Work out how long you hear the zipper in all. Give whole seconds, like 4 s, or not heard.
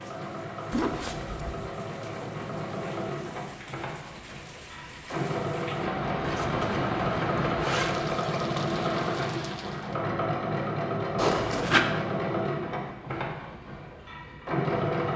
3 s.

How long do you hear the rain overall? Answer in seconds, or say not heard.
10 s.